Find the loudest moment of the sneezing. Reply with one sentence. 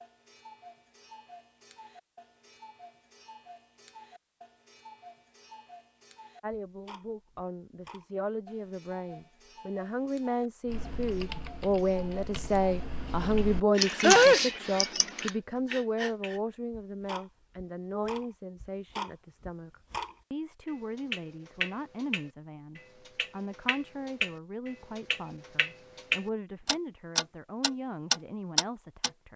The loudest moment of the sneezing is at 14 seconds.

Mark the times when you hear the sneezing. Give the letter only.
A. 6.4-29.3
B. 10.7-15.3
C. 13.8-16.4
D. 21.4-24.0
C.